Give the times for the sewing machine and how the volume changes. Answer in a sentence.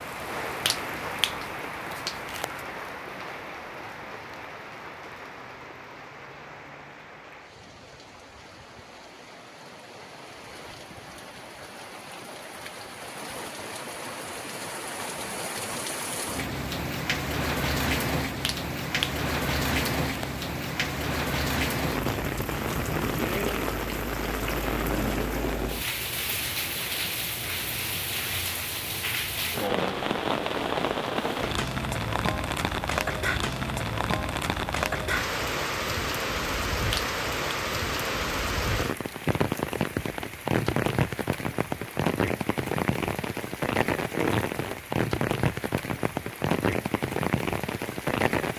You can't hear the sewing machine here.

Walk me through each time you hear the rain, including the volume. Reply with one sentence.
The rain can be heard from 0.0 to 48.5 s, getting louder.